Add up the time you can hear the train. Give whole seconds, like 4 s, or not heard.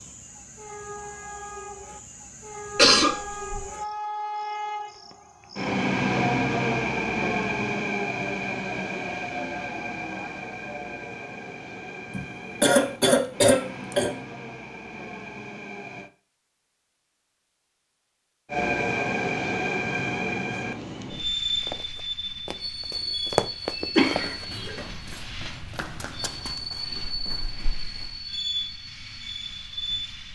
28 s.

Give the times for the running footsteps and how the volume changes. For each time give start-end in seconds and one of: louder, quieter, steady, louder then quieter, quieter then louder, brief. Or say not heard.
21.6-28.3 louder then quieter.